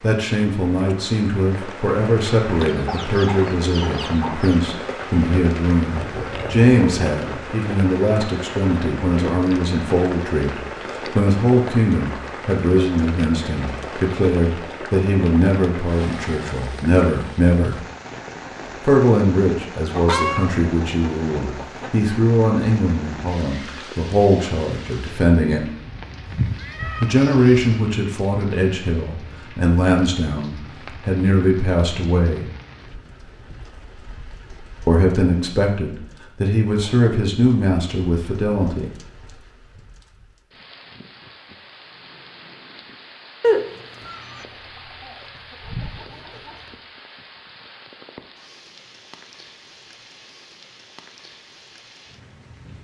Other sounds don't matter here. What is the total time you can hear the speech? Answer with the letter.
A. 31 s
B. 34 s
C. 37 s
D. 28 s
B.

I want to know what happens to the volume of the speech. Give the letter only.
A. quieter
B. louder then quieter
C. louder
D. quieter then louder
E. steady
E.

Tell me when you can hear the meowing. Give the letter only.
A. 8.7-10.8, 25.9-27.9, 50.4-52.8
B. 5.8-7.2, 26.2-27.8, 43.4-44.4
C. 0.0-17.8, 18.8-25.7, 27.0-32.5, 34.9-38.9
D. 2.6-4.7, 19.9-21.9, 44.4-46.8
B.